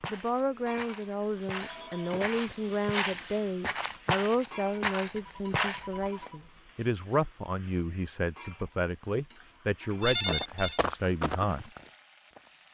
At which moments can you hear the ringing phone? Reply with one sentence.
You can hear the ringing phone from 1.6 to 2.2 s, from 5.1 to 6.5 s and from 10.0 to 10.8 s.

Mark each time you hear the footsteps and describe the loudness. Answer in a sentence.
The footsteps can be heard from 0.0 to 6.3 s, getting louder; and briefly from 10.2 to 12.6 s.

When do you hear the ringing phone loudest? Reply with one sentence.
The loudest moment of the ringing phone is at 10 seconds.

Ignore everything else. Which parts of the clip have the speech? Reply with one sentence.
You can hear the speech from 0.1 to 11.7 s.